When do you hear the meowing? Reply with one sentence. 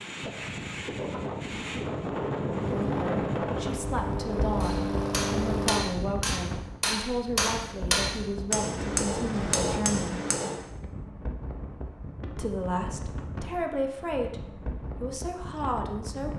You can't hear the meowing here.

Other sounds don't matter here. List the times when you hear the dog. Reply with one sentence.
You can't hear the dog here.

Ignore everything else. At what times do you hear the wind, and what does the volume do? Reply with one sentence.
The wind can be heard from 0.0 to 16.3 s, getting quieter.